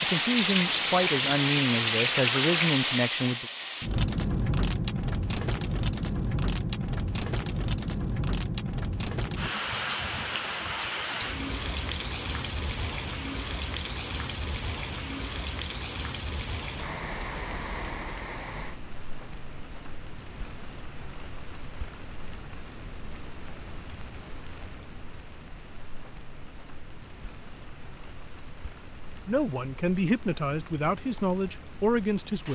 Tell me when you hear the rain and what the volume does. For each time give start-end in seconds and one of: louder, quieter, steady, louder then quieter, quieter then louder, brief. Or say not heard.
0.0-32.5 quieter.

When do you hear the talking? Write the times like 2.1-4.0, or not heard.
0.0-3.5, 29.2-32.5.